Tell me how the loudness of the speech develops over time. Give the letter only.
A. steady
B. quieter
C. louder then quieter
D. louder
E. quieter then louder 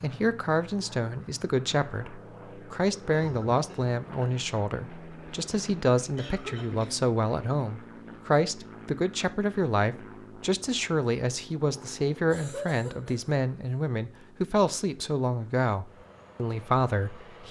A.